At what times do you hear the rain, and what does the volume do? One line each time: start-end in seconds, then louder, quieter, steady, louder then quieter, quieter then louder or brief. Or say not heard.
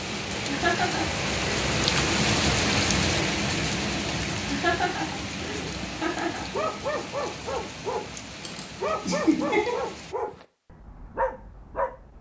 0.0-10.2 quieter.